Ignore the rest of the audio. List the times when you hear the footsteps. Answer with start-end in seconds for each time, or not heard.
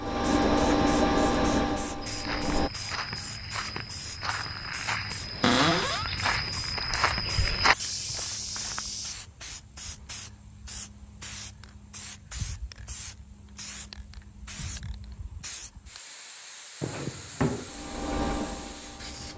2.0-9.2.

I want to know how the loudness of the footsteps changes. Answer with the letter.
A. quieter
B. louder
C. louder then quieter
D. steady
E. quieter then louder
B.